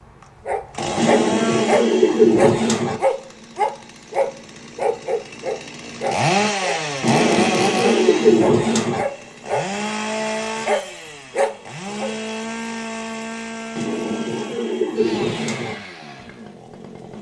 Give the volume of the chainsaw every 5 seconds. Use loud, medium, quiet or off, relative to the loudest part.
medium, loud, medium, medium.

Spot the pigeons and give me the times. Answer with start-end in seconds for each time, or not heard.
0.9-3.0, 7.0-9.1, 13.8-15.8.